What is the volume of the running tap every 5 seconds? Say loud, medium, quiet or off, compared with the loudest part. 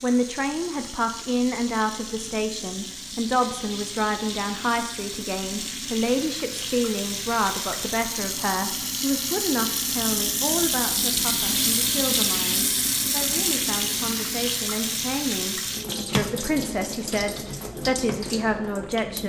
medium, medium, loud, medium.